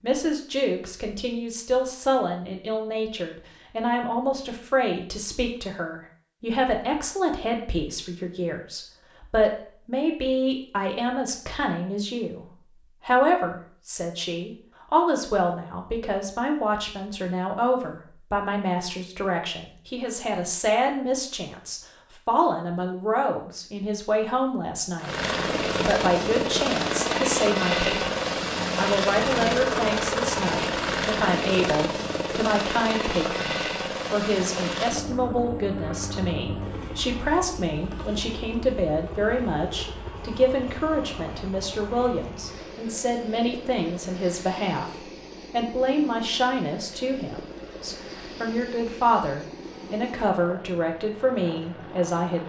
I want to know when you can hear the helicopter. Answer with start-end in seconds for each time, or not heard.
24.9-52.4.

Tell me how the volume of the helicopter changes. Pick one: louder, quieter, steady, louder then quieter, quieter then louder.
quieter.